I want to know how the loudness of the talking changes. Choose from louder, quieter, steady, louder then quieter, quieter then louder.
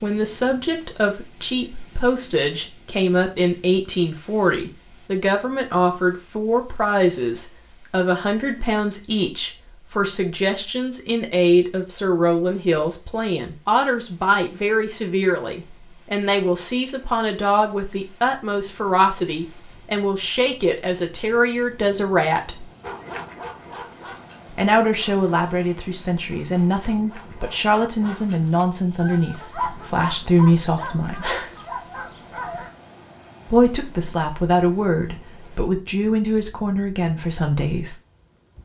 steady.